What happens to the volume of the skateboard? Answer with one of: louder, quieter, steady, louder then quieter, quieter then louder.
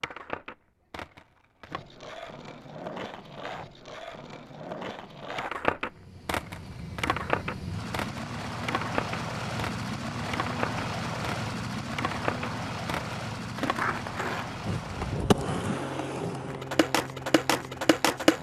louder.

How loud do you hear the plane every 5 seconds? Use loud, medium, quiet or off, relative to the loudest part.
off, loud, loud, medium.